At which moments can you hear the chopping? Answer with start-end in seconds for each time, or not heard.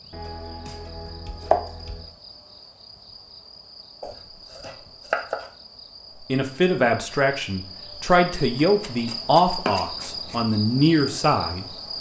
0.1-2.1, 4.0-5.5, 8.7-10.4.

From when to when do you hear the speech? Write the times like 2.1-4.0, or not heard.
6.2-11.7.